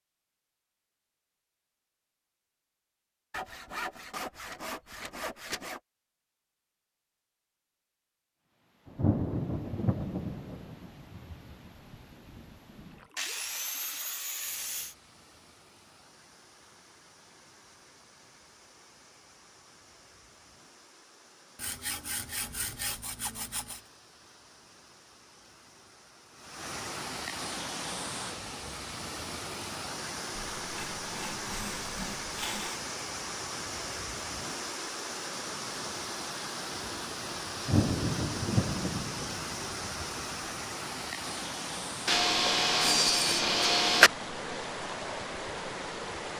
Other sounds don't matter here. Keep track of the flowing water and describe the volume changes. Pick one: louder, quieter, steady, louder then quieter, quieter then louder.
louder.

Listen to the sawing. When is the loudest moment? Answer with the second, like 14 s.
44 s.